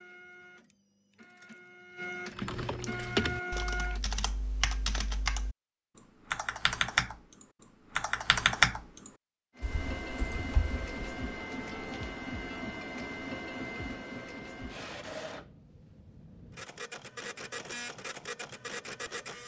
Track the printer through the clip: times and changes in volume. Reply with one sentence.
You can hear the printer from 0.0 to 4.0 s, getting louder; and from 9.6 to 19.4 s, getting quieter then louder.